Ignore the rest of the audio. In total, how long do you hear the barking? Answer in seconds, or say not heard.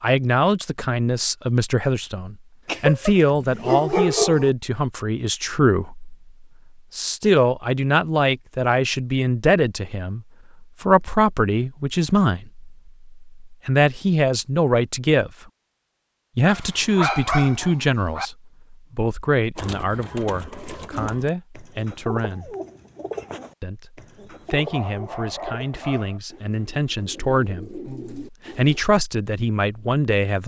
5 s.